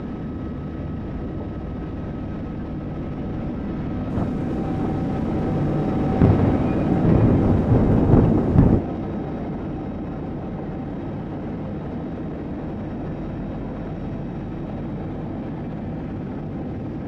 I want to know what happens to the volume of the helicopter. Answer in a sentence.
The loudness of the helicopter goes up, then down.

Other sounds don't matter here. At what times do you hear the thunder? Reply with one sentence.
You can hear the thunder from 4.1 to 8.8 s.